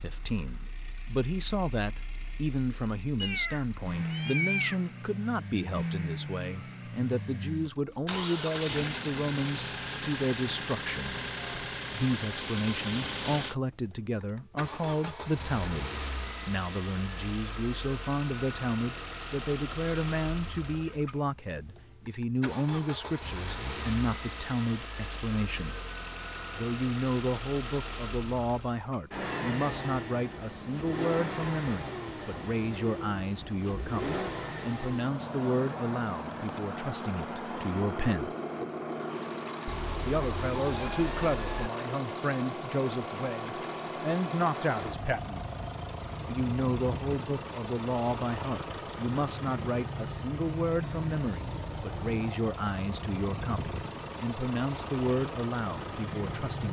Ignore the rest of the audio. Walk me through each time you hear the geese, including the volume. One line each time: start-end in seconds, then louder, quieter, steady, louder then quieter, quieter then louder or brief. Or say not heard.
not heard.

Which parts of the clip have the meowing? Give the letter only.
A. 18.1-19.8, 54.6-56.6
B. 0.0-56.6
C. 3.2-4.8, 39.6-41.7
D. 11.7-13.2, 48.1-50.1
C.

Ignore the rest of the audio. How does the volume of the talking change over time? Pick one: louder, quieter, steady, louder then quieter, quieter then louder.
steady.